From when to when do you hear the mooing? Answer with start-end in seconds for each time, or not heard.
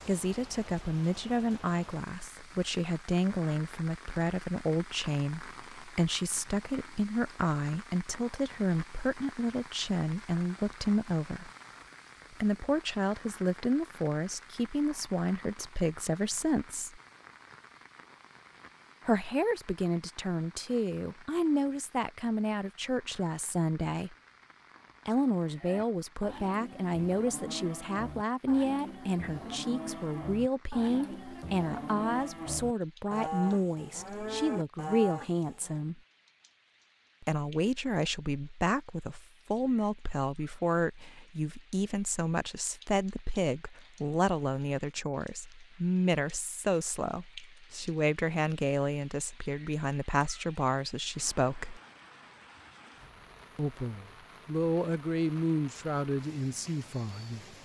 25.5-35.9.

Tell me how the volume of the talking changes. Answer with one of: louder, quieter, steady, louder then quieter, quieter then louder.
steady.